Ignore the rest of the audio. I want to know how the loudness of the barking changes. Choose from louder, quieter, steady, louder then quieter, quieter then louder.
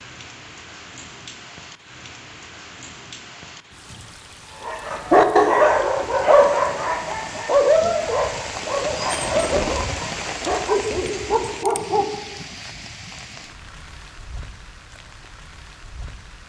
quieter.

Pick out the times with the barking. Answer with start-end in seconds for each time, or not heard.
4.7-12.3.